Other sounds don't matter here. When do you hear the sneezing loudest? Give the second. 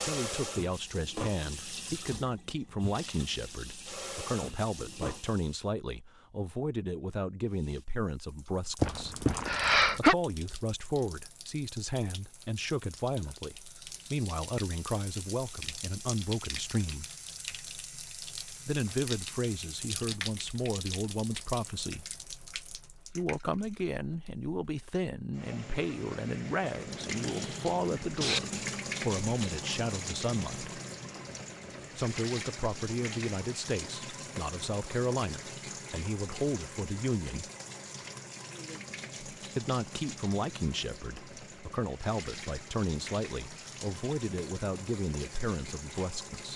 10 s.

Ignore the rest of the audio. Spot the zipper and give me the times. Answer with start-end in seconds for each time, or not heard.
not heard.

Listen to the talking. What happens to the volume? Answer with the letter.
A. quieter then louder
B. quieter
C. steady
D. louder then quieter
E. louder
C.